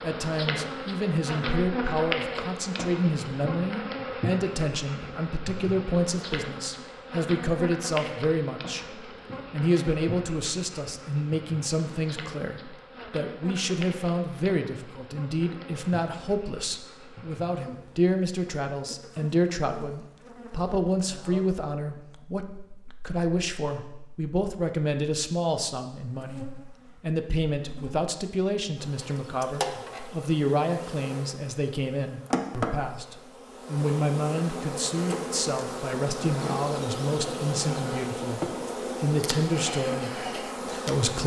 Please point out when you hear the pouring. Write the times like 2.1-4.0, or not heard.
not heard.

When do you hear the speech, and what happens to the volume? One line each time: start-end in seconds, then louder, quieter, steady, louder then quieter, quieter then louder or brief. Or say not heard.
0.0-41.2 steady.